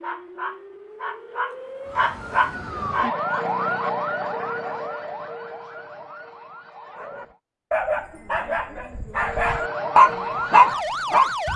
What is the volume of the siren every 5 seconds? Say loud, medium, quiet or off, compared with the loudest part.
loud, medium, loud.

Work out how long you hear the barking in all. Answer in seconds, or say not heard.
9 s.